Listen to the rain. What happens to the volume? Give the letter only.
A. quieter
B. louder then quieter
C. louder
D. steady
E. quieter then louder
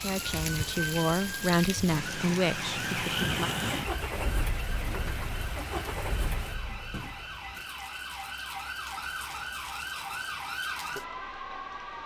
A.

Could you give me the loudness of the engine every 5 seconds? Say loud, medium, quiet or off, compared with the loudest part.
loud, medium, off.